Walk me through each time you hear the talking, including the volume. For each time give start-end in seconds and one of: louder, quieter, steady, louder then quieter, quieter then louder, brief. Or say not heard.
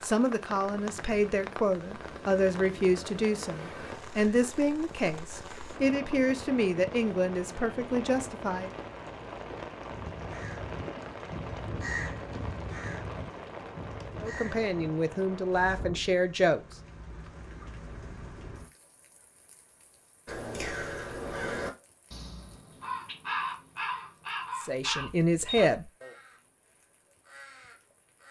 0.0-8.7 steady
14.2-16.6 brief
24.6-25.9 brief.